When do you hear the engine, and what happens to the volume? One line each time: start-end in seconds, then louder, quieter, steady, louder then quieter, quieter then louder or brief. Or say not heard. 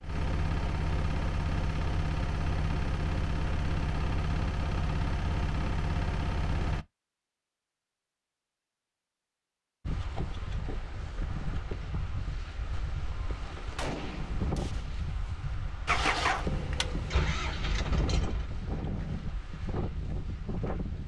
0.0-6.8 steady
15.8-18.5 brief.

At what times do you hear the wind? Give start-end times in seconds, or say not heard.
9.8-21.0.